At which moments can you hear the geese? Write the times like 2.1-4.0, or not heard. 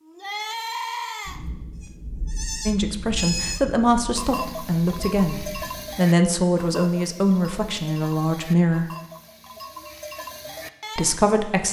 not heard.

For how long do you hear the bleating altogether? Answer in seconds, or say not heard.
11 s.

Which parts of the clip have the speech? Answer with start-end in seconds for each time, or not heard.
2.6-8.9, 10.9-11.6.